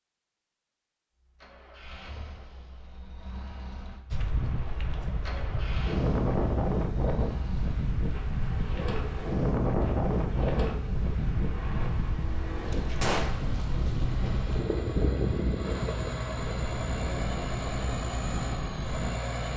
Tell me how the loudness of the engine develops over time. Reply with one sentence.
The loudness of the engine goes up.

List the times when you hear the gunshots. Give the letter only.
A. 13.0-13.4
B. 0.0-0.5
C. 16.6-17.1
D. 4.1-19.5
A.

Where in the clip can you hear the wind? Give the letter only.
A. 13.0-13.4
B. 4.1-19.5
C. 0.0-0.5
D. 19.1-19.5
B.